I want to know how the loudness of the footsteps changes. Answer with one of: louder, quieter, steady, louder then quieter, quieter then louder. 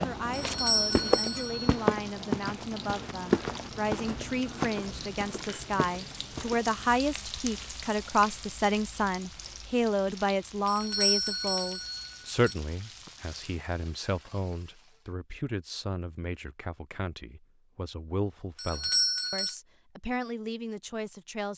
quieter.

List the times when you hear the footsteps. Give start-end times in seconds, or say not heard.
0.0-6.9.